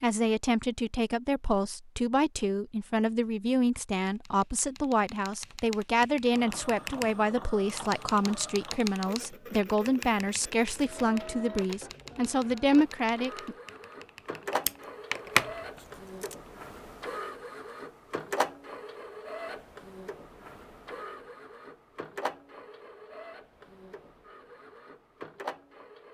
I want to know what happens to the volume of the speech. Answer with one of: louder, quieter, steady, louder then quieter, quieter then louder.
steady.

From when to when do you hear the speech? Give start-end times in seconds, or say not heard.
0.0-13.6.